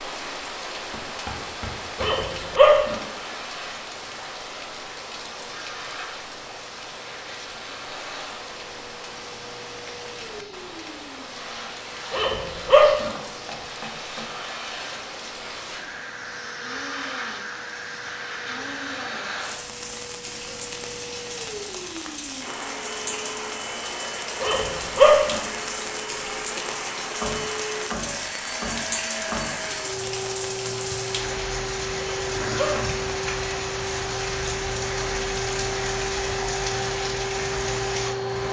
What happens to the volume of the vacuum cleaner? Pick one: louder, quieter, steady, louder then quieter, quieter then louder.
louder.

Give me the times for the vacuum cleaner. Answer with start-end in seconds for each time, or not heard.
3.0-38.4.